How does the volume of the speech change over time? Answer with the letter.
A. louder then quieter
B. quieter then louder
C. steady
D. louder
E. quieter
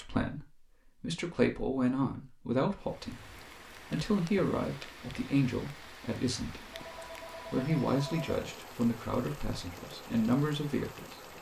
C.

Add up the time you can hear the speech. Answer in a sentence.
You can hear the speech for 10 seconds altogether.